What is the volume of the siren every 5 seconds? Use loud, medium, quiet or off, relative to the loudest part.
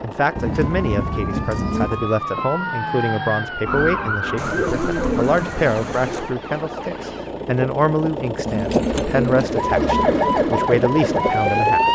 medium, medium, loud.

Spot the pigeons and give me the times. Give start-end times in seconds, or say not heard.
0.3-2.1, 4.3-6.3, 8.4-10.4.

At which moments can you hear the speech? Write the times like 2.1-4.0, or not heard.
0.0-11.9.